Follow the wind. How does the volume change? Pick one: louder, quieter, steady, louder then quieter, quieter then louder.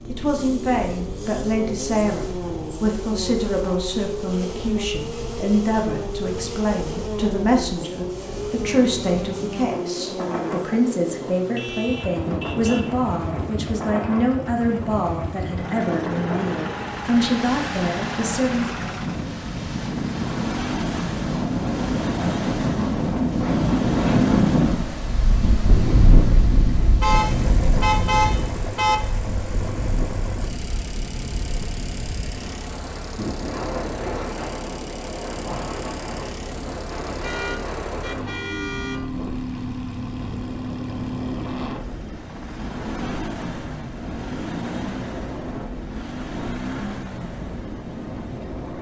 louder then quieter.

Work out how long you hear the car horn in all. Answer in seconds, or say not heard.
5 s.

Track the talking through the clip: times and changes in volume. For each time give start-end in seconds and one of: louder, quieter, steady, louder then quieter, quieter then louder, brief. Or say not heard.
0.1-18.9 steady.